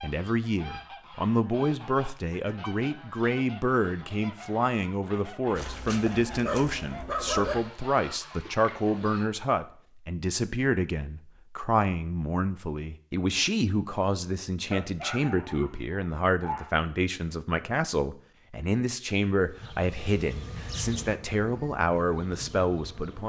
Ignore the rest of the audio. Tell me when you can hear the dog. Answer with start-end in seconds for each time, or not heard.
5.5-7.5, 14.7-16.7.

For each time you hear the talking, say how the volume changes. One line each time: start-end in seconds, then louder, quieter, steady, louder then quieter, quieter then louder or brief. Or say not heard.
0.0-23.2 steady.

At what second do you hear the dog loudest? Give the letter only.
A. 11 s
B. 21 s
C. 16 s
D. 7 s
D.